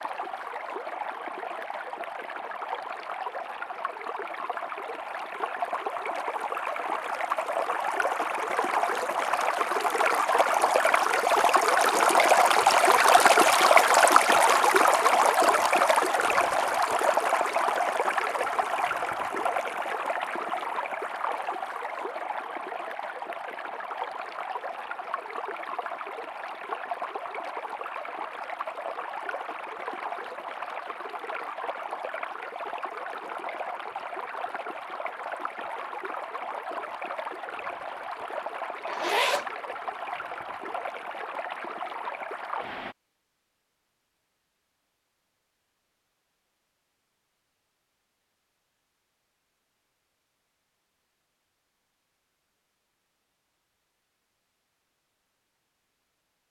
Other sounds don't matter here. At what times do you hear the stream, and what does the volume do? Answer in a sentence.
The stream can be heard from 0.0 to 43.0 s, getting louder then quieter.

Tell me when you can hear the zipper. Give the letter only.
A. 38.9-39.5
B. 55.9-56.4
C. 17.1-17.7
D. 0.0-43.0
A.